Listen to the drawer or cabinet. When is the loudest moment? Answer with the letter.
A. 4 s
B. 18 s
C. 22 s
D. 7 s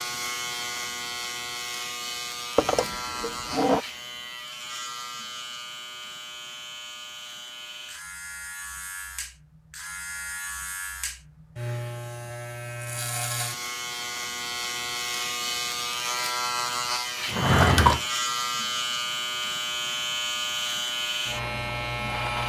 B.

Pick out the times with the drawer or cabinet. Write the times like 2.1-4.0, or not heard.
2.5-3.8, 17.2-18.1.